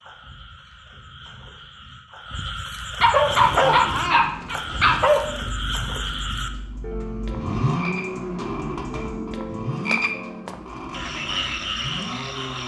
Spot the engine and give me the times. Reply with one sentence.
You can hear the engine from 3.2 to 12.6 s.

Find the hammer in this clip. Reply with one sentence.
You can't hear the hammer here.